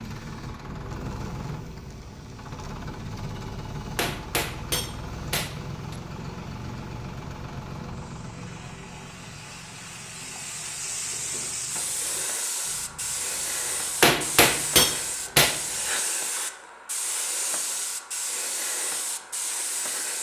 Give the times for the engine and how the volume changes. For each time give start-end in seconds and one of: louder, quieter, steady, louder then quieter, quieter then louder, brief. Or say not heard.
0.0-15.9 quieter.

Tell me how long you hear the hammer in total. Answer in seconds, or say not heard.
4 s.